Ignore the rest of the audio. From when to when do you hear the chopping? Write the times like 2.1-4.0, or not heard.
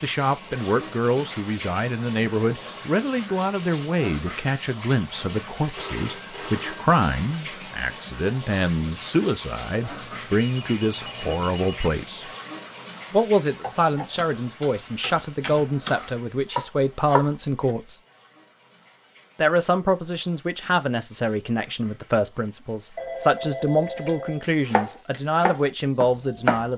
13.6-17.7, 24.1-26.7.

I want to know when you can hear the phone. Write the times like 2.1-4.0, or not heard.
5.8-7.0, 9.9-11.9, 22.9-24.5.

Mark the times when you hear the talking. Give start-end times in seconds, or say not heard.
0.0-12.3, 13.1-17.9, 19.4-26.7.